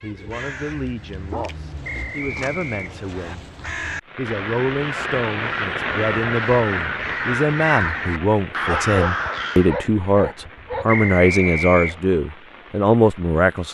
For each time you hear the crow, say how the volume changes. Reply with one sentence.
The crow can be heard from 0.0 to 9.8 s, getting louder.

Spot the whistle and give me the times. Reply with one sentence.
The whistle can be heard from 1.8 to 3.4 s and from 10.8 to 12.0 s.